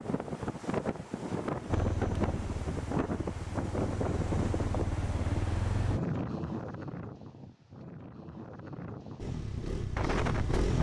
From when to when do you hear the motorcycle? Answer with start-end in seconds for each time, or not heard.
1.6-6.0, 9.2-10.7.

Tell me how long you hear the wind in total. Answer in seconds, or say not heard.
11 s.